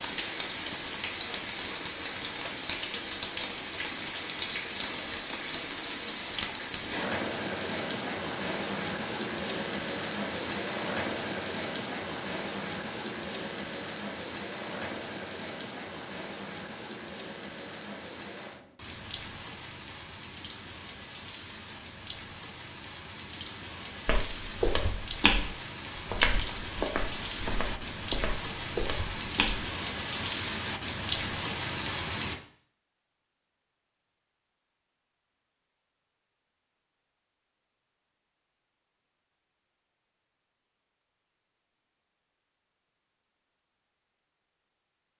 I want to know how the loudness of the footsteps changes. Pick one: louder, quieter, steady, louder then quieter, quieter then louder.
quieter.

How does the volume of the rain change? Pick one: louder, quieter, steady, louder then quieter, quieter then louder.
quieter then louder.